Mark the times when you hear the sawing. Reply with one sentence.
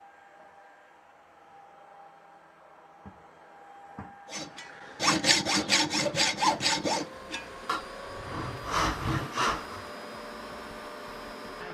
The sawing can be heard from 4.3 to 9.8 s.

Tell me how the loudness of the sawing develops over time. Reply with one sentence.
The volume of the sawing goes down, then up.